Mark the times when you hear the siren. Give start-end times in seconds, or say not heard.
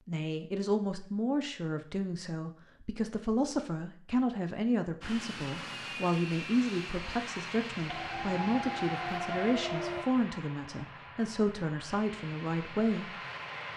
7.8-10.1.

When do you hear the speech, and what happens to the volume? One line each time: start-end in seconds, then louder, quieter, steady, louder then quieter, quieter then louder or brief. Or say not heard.
0.1-13.2 steady.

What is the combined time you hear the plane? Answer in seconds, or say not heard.
9 s.